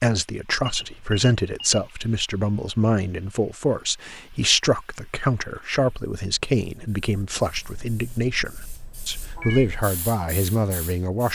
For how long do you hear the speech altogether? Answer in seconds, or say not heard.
11 s.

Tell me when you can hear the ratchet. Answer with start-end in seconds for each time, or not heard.
not heard.